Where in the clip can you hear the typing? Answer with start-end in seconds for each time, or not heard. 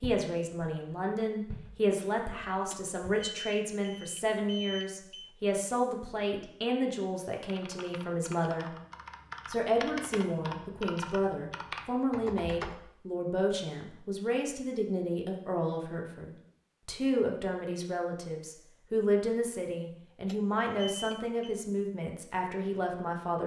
7.3-12.8.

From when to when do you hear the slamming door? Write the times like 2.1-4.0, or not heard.
not heard.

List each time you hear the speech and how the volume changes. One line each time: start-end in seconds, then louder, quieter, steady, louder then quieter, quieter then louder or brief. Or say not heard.
0.0-8.7 steady
9.4-23.4 steady.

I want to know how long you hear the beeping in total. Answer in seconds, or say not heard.
4 s.